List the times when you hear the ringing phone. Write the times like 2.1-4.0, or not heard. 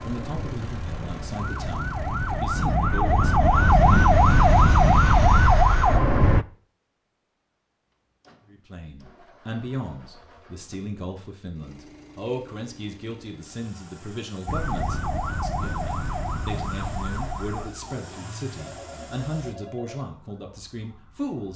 18.6-20.1.